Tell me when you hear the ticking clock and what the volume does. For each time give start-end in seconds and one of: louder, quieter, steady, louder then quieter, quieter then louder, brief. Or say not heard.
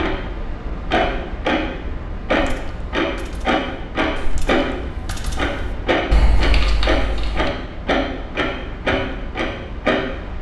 0.0-10.3 steady.